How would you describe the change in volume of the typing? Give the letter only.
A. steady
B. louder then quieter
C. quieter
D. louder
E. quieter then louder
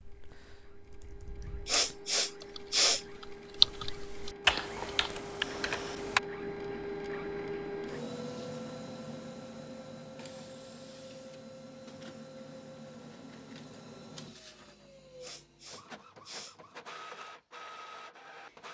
B.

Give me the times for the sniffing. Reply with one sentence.
You can hear the sniffing from 1.6 to 3.0 s and from 15.2 to 16.6 s.